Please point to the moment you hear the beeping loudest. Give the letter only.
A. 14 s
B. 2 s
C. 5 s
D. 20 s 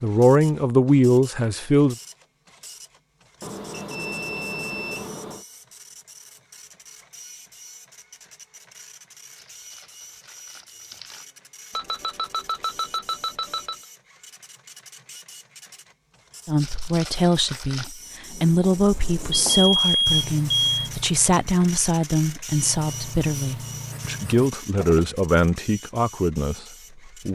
D.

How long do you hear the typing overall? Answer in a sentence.
You can't hear the typing here.